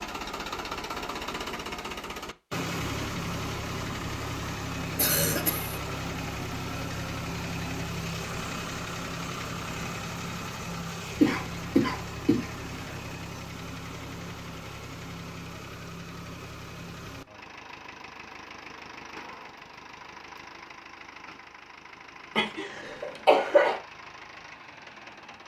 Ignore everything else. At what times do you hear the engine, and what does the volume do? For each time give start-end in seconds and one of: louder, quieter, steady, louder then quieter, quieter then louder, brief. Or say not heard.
0.0-25.4 quieter.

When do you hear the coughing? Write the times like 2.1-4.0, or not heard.
5.0-5.8, 11.2-12.9, 22.4-23.8.